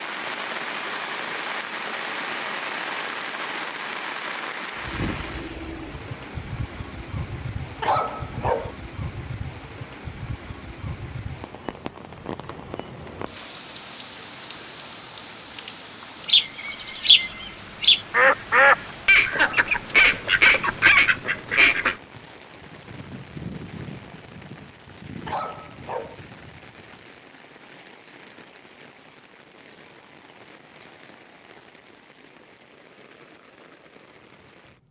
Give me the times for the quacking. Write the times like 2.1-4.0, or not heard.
16.2-21.9.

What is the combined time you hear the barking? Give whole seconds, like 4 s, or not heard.
3 s.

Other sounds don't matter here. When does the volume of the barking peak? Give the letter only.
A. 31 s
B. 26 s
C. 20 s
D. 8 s
D.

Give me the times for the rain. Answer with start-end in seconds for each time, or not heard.
0.0-34.8.